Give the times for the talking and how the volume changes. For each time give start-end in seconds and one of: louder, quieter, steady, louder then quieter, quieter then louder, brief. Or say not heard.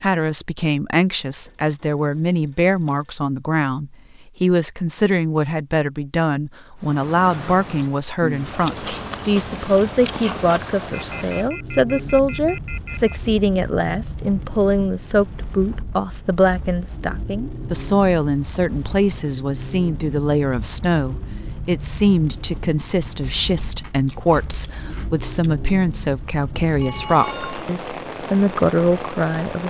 0.0-29.6 steady.